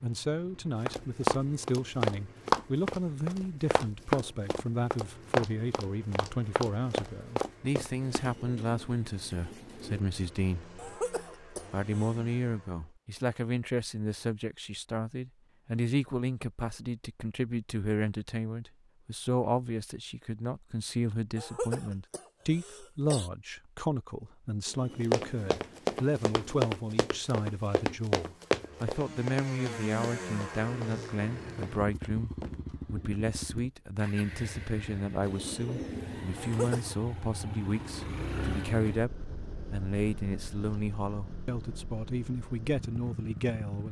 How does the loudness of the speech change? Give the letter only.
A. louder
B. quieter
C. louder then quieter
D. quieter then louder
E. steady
E.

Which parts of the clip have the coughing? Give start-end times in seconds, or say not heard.
10.8-12.2, 21.4-23.3, 36.4-37.0.